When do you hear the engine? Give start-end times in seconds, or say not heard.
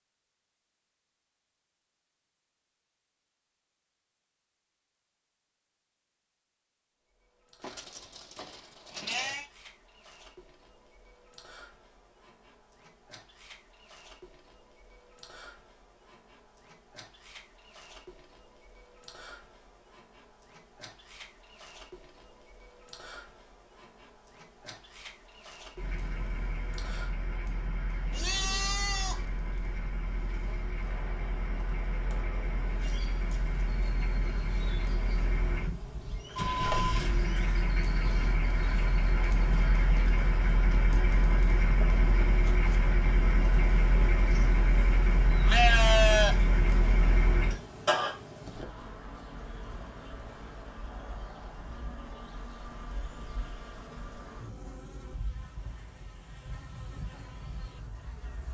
25.8-48.1.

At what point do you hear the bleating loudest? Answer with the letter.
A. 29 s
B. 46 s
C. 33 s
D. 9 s
B.